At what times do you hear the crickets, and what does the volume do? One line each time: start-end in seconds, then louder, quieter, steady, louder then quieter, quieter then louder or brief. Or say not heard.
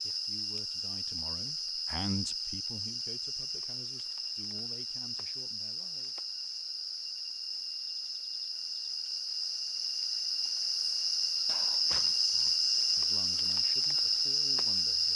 0.0-15.1 louder.